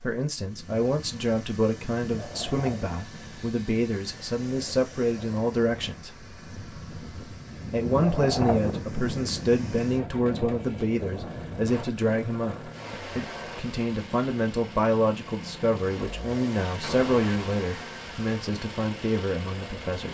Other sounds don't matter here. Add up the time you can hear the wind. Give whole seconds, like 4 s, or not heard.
13 s.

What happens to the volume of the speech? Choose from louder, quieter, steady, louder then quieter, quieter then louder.
steady.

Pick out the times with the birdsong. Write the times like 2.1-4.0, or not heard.
not heard.